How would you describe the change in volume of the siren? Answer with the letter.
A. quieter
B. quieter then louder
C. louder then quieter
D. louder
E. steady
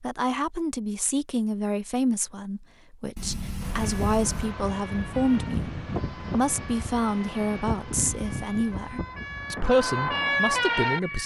D.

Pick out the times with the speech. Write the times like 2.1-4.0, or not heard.
0.0-11.2.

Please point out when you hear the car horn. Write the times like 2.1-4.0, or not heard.
3.1-4.5.